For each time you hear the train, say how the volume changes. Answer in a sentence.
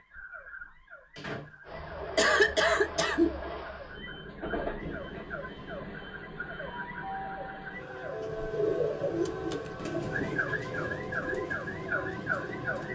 The train can be heard from 1.6 to 12.9 s, at a steady volume.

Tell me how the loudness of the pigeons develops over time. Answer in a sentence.
The loudness of the pigeons goes down.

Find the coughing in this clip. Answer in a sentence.
You can hear the coughing from 2.1 to 3.4 s.